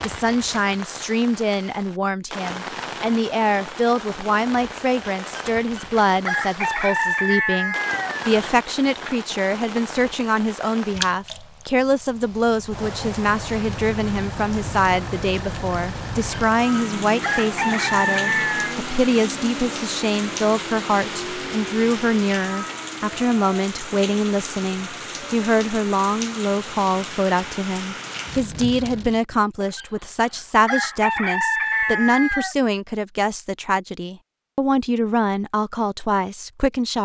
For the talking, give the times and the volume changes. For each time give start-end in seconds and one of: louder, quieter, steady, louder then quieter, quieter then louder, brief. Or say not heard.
0.0-36.9 steady.